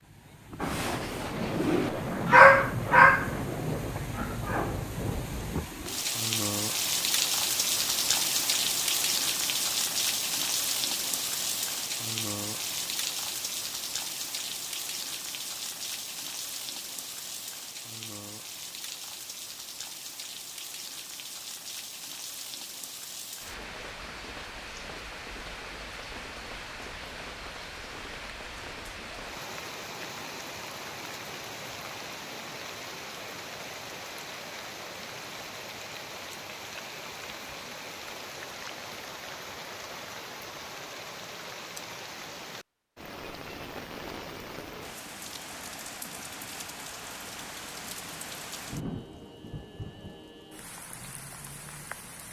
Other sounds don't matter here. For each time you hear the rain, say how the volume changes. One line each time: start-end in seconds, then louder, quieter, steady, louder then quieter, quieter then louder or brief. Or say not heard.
0.0-52.2 quieter.